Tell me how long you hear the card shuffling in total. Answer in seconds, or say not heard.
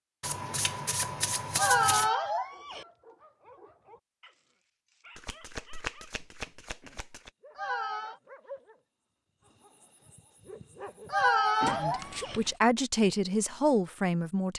5 s.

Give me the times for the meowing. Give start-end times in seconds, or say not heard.
1.6-2.9, 7.5-8.2, 11.1-12.4.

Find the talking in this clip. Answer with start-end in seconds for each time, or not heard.
11.8-14.5.